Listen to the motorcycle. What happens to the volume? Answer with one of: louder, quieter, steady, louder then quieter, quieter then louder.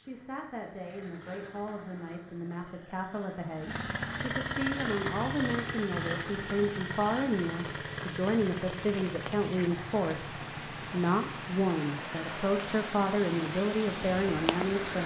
louder then quieter.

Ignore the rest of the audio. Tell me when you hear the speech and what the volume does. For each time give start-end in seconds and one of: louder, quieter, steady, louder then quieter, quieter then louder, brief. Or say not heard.
0.0-15.0 louder.